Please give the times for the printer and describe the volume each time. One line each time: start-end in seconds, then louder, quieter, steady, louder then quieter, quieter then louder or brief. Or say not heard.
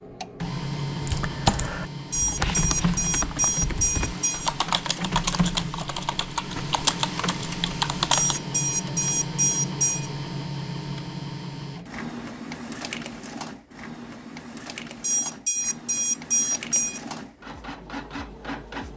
0.0-18.9 quieter.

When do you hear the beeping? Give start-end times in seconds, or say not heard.
2.1-4.5, 8.1-10.1, 15.0-17.0.